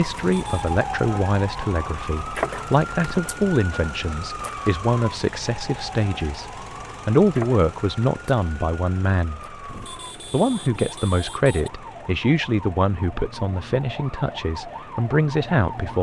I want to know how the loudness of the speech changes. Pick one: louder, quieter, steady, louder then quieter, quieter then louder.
steady.